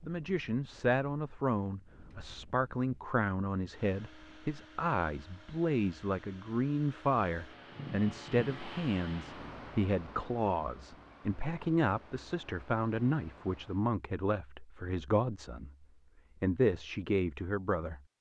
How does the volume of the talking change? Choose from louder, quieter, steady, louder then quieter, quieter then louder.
steady.